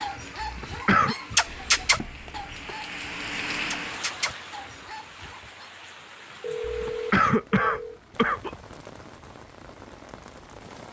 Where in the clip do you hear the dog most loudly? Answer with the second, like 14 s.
2 s.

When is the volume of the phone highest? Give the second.
7 s.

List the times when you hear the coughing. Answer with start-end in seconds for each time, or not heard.
0.4-1.1, 6.7-8.5.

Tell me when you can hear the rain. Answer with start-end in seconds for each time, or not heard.
0.0-10.8.